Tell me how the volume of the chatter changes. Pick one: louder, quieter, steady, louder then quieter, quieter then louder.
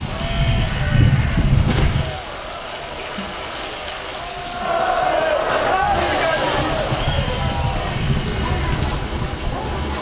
louder then quieter.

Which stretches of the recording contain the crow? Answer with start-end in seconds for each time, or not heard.
0.0-2.1, 5.5-9.9.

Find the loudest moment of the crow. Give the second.
1 s.